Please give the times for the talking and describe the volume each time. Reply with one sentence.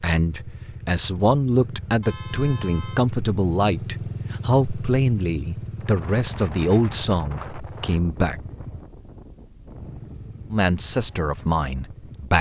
You can hear the talking from 0.0 to 8.4 s, at a steady volume; and briefly from 10.5 to 12.3 s.